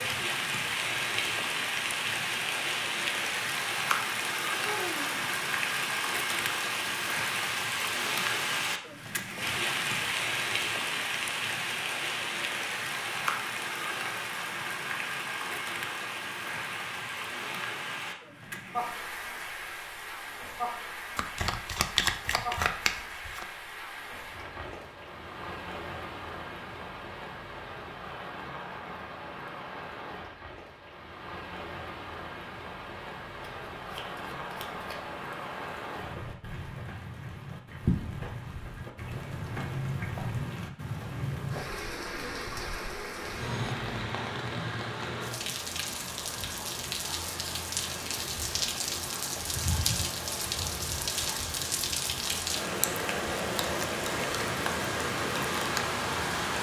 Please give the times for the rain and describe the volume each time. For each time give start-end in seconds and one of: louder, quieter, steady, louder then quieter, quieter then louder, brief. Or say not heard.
0.0-56.5 quieter then louder.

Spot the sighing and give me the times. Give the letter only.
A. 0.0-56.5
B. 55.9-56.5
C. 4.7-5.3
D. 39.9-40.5
C.